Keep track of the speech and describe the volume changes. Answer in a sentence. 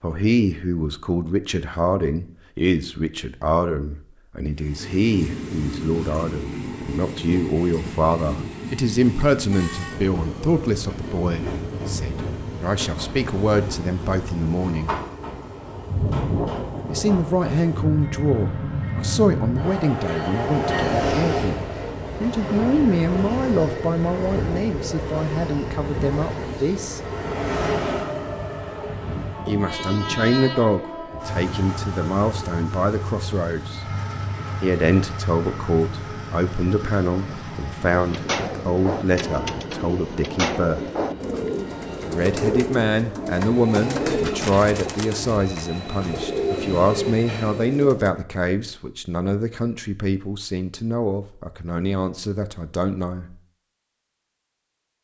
The loudness of the speech stays about the same.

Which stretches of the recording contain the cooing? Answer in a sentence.
You can hear the cooing from 38.0 to 48.1 s.